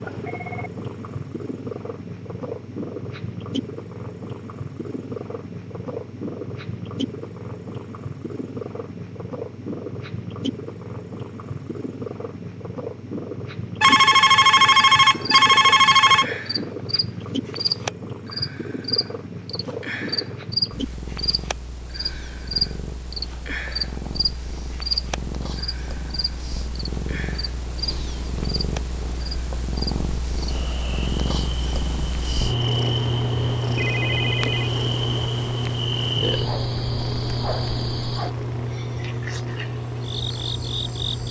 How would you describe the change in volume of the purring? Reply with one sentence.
The volume of the purring goes up.